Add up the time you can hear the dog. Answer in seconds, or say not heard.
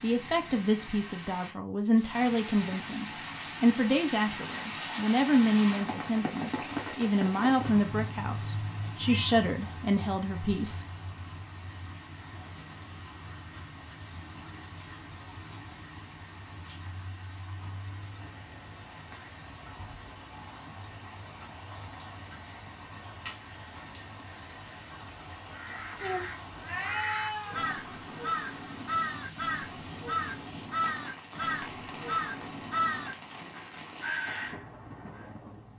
not heard.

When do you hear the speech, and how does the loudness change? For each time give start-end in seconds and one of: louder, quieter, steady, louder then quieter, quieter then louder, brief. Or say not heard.
0.0-10.8 steady.